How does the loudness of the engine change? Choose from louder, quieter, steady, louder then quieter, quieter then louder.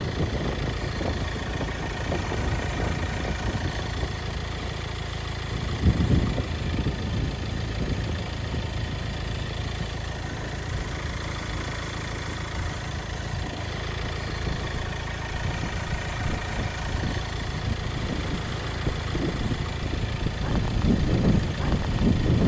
steady.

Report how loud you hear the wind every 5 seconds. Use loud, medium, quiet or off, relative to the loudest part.
medium, medium, quiet, medium, loud.